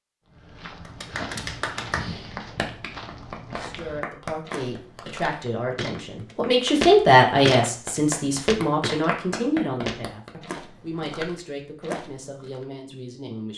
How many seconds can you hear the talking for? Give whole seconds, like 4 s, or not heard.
10 s.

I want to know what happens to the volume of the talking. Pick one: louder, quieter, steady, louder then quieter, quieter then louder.
louder then quieter.